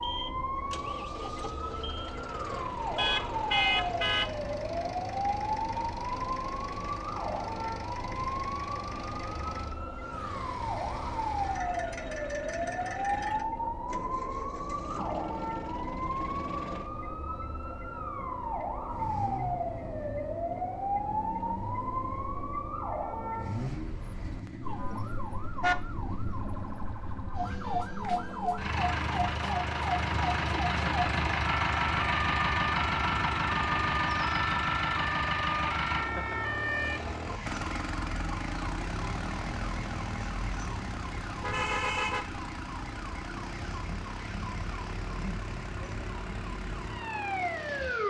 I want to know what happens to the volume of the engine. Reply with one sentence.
The loudness of the engine goes up, then down.